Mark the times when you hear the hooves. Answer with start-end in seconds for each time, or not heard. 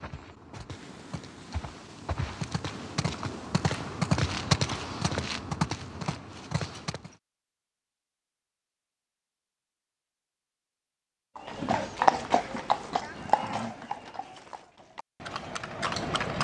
0.0-7.2, 11.3-16.3.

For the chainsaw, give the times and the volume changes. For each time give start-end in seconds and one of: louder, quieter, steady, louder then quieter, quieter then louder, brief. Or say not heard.
not heard.